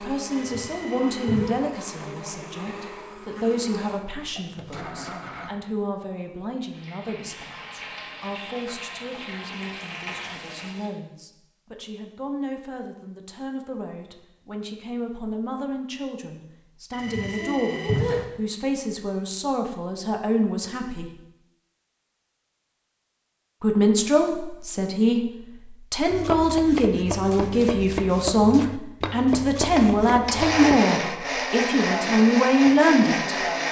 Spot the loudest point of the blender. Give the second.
31 s.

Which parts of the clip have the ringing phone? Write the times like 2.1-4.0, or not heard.
0.3-1.6, 16.9-18.2.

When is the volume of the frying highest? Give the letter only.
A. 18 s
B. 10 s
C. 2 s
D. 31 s
B.